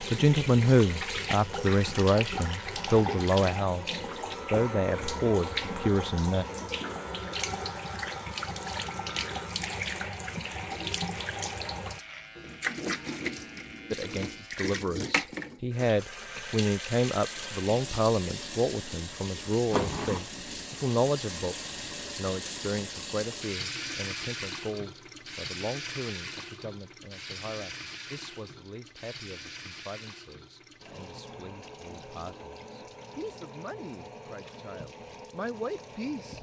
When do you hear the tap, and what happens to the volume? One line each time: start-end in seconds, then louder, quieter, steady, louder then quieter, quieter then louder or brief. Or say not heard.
0.0-36.3 quieter.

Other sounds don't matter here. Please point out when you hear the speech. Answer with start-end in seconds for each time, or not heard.
0.0-6.5, 13.9-36.3.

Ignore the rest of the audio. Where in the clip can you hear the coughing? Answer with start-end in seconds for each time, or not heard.
not heard.